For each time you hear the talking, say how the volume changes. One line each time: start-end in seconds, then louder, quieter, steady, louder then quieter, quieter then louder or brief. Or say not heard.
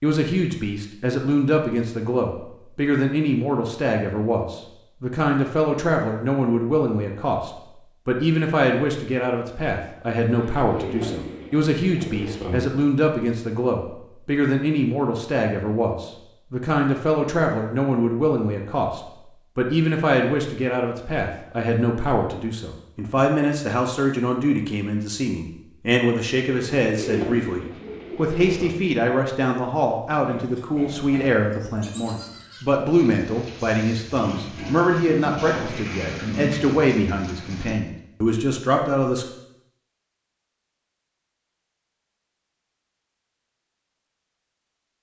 0.0-39.2 steady.